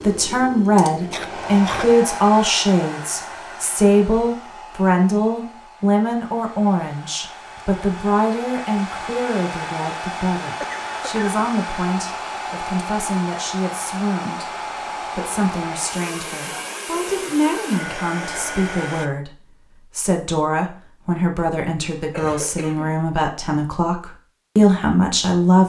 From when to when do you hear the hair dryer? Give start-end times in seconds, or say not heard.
0.0-19.1.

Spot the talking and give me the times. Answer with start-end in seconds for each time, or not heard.
0.0-25.6.